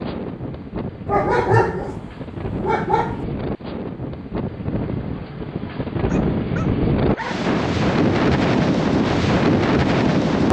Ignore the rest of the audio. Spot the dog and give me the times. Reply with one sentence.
You can hear the dog from 1.1 to 3.2 s and from 6.0 to 7.3 s.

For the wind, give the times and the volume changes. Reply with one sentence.
The wind can be heard from 0.0 to 10.4 s, getting louder.